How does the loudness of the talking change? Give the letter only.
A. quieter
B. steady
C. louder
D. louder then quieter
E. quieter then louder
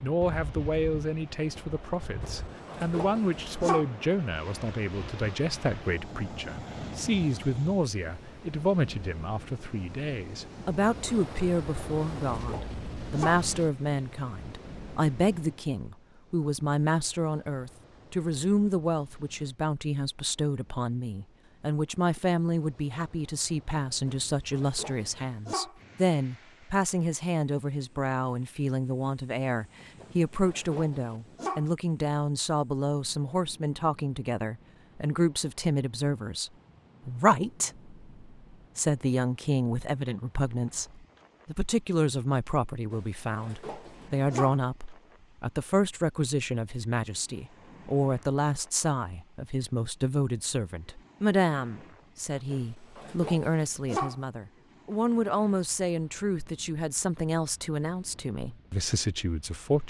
B.